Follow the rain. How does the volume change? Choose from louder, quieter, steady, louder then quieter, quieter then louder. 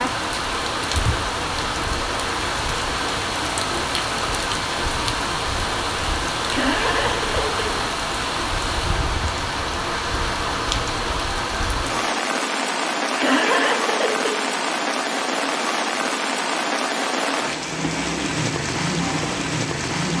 steady.